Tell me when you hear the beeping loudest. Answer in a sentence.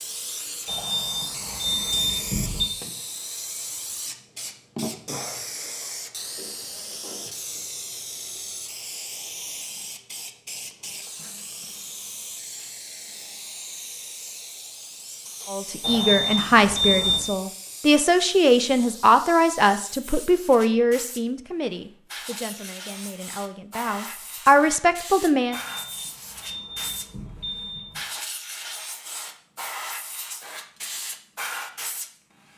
The loudest moment of the beeping is at 17 seconds.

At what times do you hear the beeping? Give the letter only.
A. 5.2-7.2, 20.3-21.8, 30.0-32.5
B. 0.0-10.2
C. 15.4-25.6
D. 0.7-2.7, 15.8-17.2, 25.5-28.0
D.